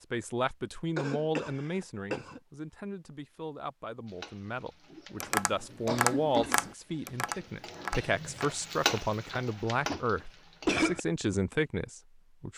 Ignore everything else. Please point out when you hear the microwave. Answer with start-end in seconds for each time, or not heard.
not heard.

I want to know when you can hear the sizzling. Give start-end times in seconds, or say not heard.
4.0-10.8.